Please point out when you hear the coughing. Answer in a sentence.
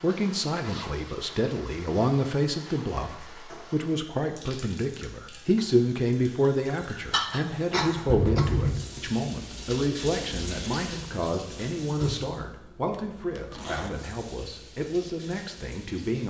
The coughing can be heard from 7.1 to 8.6 s.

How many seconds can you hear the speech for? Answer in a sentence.
The speech can be heard for 16 seconds in total.